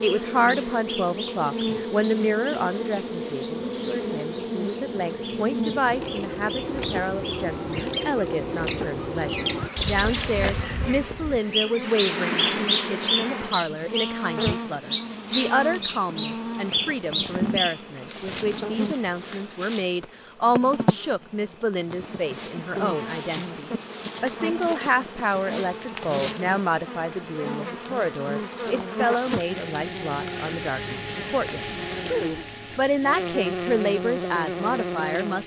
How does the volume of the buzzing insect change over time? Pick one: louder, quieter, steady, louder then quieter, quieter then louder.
steady.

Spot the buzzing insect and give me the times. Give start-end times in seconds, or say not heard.
0.0-35.4.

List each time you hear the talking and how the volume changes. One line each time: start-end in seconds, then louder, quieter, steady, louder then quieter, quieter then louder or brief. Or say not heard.
0.0-35.4 steady.